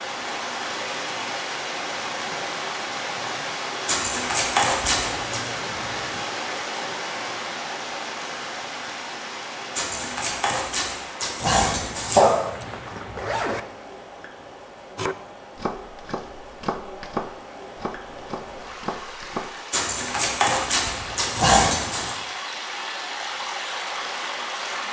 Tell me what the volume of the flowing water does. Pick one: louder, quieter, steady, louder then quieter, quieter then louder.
quieter then louder.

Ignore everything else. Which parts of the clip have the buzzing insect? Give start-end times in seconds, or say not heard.
not heard.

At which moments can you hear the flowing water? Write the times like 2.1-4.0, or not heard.
0.0-24.8.